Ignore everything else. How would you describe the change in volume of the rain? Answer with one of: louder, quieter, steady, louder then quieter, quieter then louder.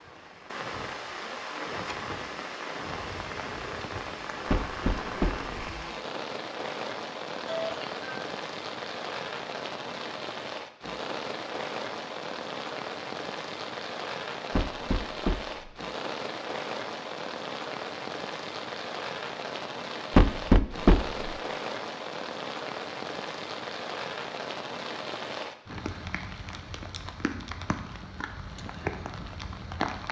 steady.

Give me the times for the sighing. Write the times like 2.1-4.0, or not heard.
7.5-8.2.